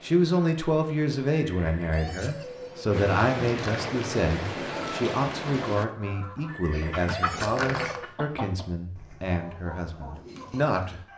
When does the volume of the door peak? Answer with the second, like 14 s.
8 s.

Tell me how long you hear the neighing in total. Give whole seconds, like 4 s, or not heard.
3 s.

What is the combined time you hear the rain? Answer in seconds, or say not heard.
6 s.